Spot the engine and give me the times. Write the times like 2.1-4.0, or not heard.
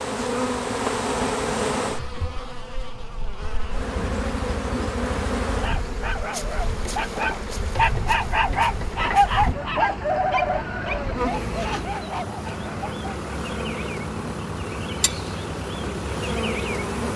3.5-17.1.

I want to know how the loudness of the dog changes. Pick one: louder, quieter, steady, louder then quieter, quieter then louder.
louder then quieter.